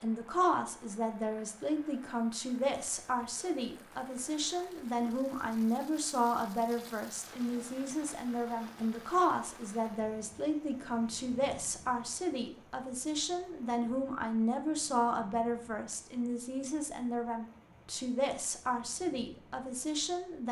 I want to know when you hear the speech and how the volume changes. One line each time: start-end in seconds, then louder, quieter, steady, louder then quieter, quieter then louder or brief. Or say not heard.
0.0-20.4 steady.